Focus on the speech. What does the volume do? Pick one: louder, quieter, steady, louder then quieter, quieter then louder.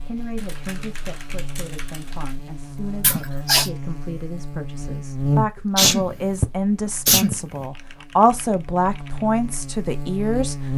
louder.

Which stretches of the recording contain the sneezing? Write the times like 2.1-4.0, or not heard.
3.0-3.7, 5.8-7.7.